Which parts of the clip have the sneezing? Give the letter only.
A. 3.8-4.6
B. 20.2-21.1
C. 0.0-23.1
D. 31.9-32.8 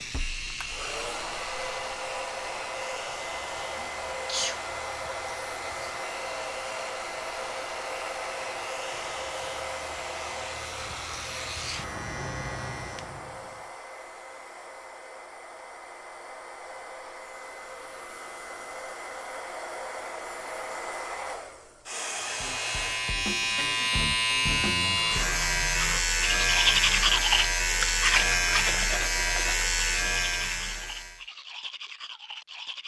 A.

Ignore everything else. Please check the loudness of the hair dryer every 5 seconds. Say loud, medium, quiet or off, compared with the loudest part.
loud, loud, medium, medium, loud, off, off.